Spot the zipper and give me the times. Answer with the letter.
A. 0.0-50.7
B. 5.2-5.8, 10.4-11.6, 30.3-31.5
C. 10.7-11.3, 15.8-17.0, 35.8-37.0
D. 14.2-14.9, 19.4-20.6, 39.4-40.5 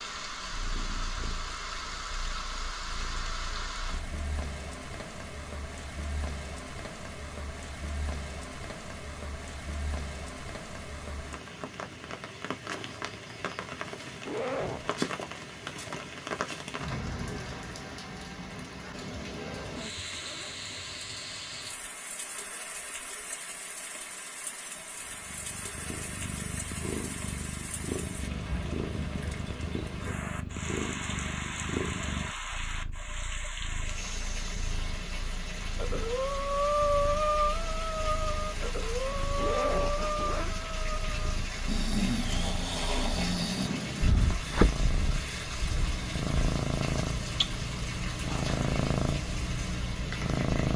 D.